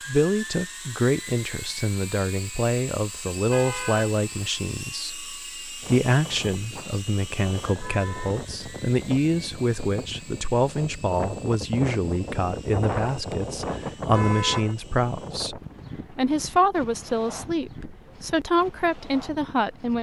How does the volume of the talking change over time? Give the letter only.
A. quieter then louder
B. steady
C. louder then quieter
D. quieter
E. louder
B.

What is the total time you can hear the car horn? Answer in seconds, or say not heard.
2 s.